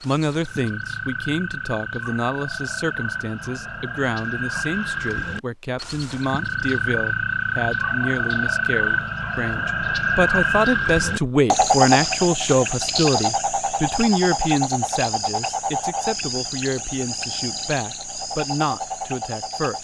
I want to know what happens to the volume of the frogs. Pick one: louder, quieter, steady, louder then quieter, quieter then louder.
louder then quieter.